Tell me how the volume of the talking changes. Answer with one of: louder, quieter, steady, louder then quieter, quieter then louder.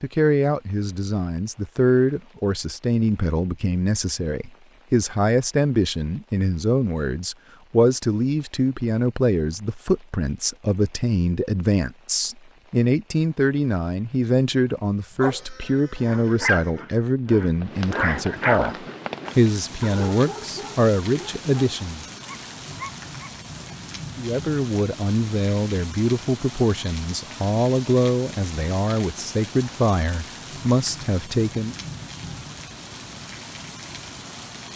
steady.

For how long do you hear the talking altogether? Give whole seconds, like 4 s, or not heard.
30 s.